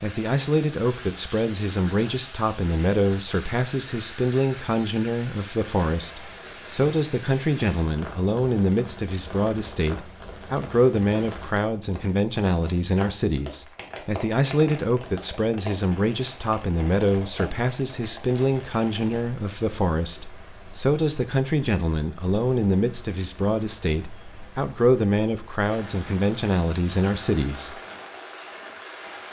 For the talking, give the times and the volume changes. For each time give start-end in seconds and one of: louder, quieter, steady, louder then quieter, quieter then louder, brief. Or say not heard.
0.0-27.8 steady.